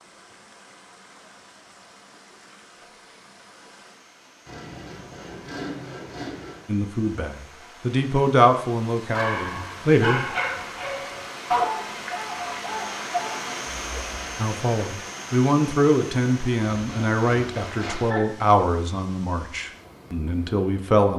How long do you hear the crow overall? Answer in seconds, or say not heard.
not heard.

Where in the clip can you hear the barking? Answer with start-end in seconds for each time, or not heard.
9.1-14.1.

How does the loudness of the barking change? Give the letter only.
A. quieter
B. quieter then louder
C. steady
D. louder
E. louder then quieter
E.